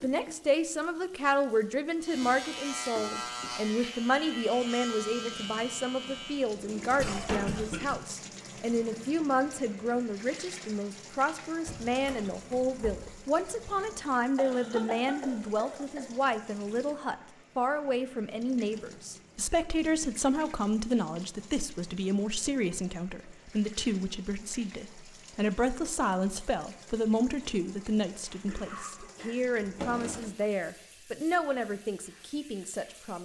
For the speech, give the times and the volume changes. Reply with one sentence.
You can hear the speech from 0.0 to 33.2 s, at a steady volume.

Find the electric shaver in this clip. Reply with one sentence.
You can hear the electric shaver from 2.0 to 6.5 s.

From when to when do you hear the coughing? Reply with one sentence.
The coughing can be heard from 7.0 to 8.0 s, from 14.3 to 16.1 s and from 28.2 to 29.4 s.